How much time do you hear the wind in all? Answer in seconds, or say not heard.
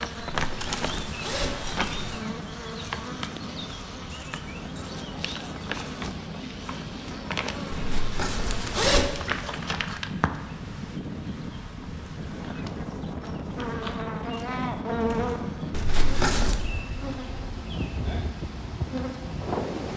20 s.